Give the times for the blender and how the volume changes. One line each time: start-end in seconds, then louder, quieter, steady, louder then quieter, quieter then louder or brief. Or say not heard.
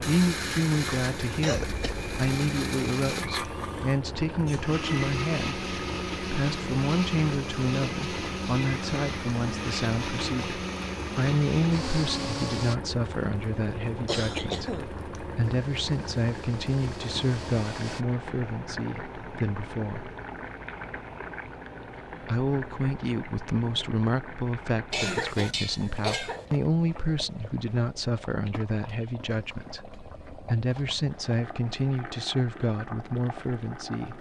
0.0-12.8 steady
15.4-18.1 brief.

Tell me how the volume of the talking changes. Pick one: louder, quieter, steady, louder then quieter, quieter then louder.
steady.